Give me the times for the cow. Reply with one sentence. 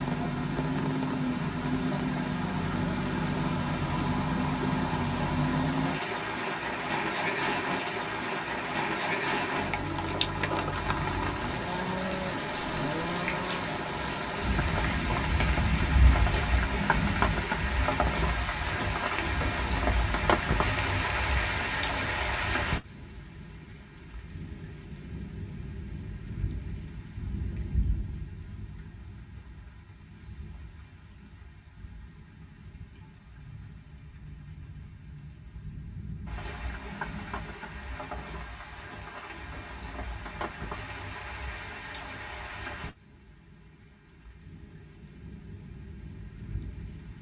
The cow can be heard from 11.7 to 13.7 s.